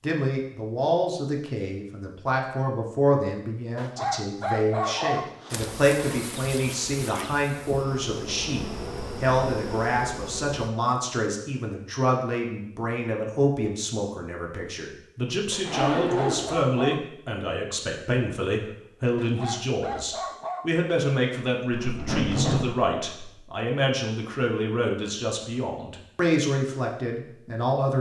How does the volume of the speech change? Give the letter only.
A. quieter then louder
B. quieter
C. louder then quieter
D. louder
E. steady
E.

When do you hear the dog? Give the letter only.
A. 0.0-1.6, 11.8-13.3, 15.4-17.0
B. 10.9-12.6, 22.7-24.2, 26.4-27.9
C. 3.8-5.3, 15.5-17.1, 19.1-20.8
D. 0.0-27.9
C.